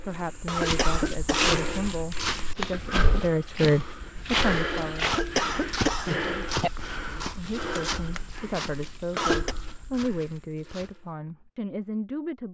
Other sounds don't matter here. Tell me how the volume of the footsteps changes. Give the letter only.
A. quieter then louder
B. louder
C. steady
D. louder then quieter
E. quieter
E.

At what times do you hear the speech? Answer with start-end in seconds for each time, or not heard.
0.0-5.2, 7.1-12.4.